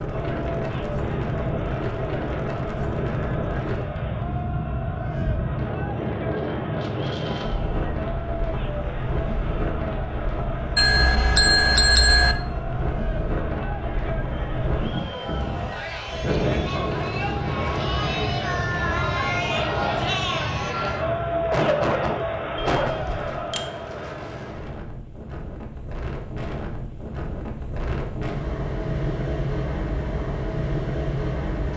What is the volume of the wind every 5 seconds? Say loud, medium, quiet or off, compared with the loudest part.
loud, loud, loud, loud, medium, loud, loud.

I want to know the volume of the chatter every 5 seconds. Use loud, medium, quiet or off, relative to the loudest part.
medium, medium, medium, loud, loud, off, off.